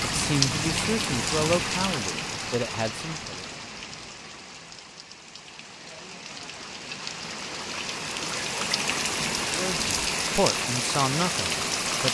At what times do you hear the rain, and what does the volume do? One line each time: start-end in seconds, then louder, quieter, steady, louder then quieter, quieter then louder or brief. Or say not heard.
0.0-12.1 quieter then louder.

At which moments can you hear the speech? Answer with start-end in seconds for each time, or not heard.
0.1-3.5, 9.4-12.1.